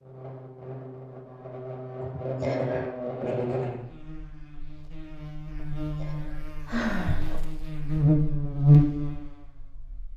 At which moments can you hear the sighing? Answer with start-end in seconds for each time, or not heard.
2.0-2.9, 5.6-7.4.